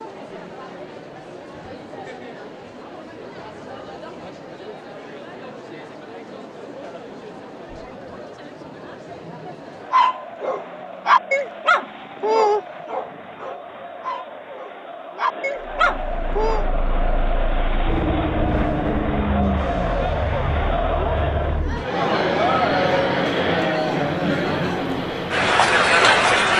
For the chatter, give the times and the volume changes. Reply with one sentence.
The chatter can be heard from 0.0 to 26.5 s, getting louder.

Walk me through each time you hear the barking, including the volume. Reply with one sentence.
The barking can be heard from 9.9 to 16.6 s, getting quieter then louder.